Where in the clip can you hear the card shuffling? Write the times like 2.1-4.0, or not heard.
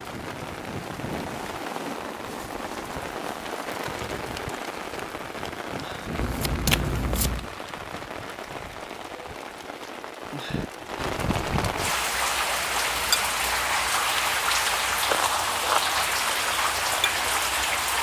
6.2-7.5.